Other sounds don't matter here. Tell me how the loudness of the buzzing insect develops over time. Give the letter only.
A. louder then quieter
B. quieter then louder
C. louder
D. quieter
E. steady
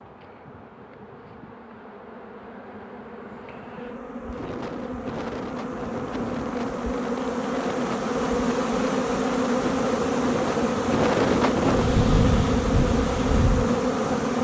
C.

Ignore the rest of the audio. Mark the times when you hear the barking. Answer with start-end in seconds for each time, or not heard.
not heard.